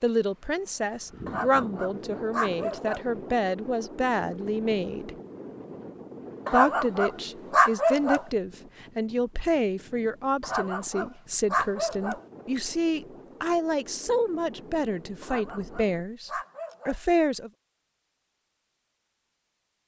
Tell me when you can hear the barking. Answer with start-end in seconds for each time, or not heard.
1.2-3.0, 6.5-8.2, 10.4-12.2, 15.2-17.0.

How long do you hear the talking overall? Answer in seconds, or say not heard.
16 s.